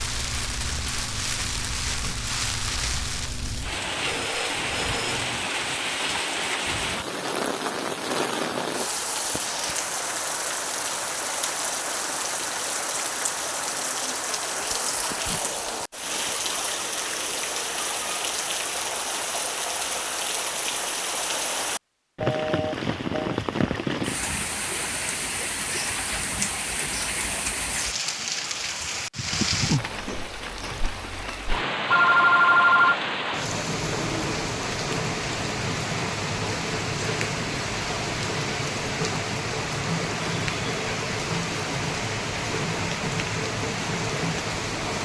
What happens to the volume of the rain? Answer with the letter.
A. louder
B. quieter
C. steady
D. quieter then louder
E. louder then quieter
C.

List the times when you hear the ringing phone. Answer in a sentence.
The ringing phone can be heard from 4.0 to 5.5 s, from 22.2 to 23.4 s and from 31.9 to 33.0 s.